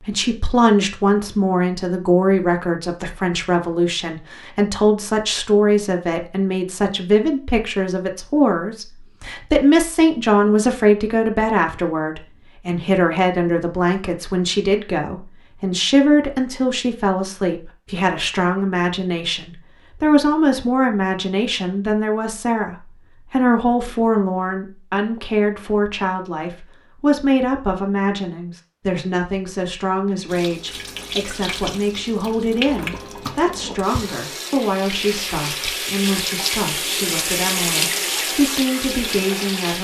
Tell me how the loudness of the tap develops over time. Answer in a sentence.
The volume of the tap goes up.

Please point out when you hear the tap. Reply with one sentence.
You can hear the tap from 30.2 to 39.8 s.